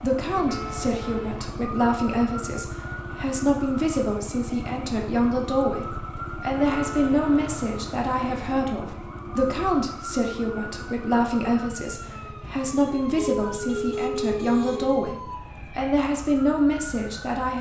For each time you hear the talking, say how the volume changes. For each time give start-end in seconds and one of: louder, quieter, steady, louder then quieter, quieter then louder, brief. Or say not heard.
0.0-17.5 steady.